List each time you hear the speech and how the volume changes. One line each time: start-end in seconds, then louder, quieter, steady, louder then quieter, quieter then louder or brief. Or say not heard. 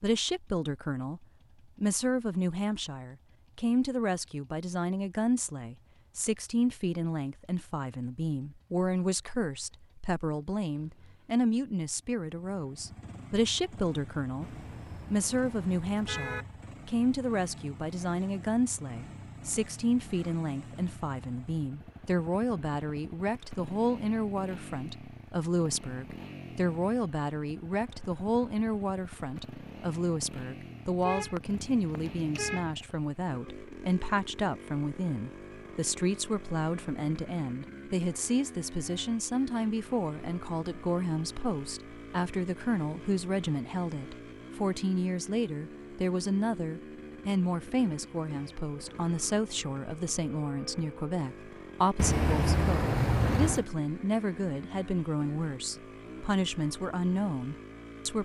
0.0-58.2 steady.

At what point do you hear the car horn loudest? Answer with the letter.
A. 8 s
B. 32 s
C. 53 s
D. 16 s
C.